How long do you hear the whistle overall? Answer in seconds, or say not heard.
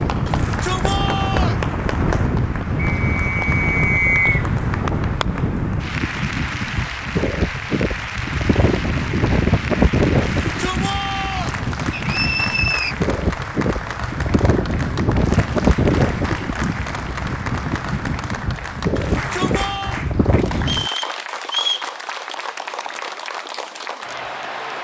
4 s.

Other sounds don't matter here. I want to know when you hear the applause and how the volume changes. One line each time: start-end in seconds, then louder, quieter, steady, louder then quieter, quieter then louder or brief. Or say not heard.
0.0-24.7 steady.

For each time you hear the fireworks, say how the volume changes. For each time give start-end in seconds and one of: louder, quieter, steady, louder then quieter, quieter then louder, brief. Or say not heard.
not heard.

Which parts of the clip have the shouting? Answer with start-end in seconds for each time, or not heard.
0.2-1.6, 10.2-11.6, 18.9-20.0.